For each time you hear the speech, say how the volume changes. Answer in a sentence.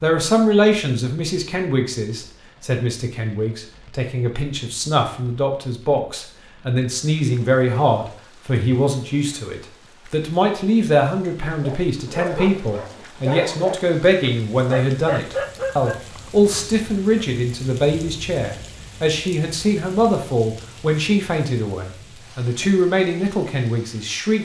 You can hear the speech from 0.0 to 24.4 s, at a steady volume.